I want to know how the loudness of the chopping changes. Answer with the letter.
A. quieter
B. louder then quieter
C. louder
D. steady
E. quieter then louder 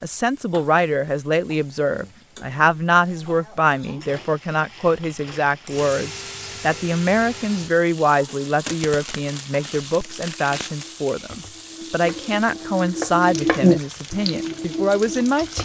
B.